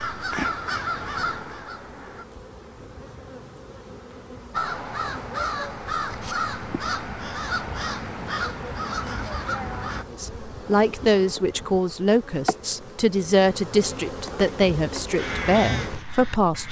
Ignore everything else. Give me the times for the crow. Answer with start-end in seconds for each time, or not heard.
0.0-2.2, 4.5-10.1, 15.2-16.6.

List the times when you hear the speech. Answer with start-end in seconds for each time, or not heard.
10.1-16.6.